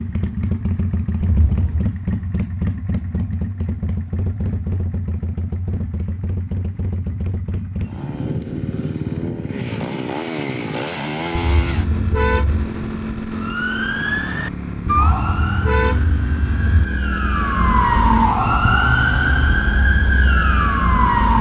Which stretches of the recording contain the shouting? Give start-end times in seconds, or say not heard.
not heard.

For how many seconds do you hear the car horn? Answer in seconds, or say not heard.
4 s.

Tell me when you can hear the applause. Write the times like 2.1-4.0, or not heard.
not heard.